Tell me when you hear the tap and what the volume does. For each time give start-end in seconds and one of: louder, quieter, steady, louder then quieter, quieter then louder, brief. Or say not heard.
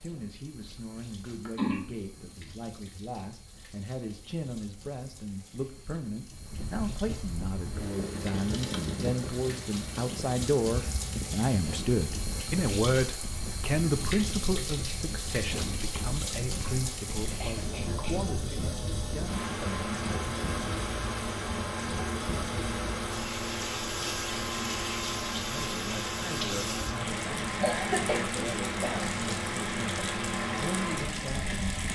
0.0-31.8 louder.